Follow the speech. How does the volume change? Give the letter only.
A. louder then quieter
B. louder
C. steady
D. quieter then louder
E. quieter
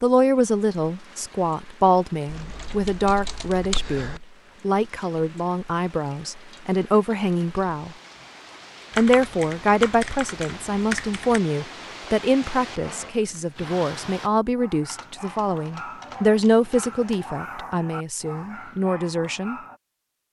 C.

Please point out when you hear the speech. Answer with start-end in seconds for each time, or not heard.
0.0-8.0, 8.9-19.6.